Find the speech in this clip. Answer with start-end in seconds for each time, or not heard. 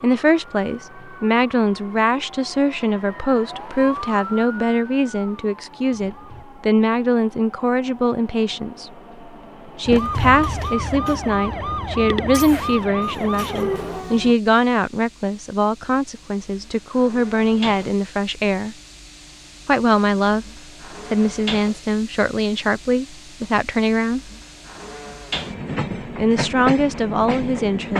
0.0-8.9, 9.8-18.8, 19.6-20.4, 21.1-24.2, 26.0-27.9.